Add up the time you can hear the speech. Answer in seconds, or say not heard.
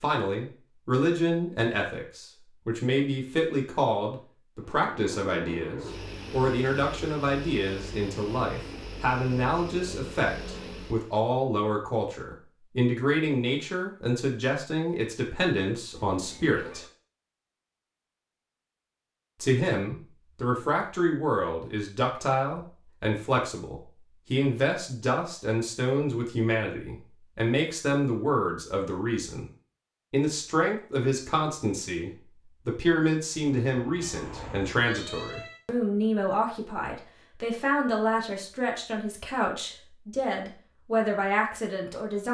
39 s.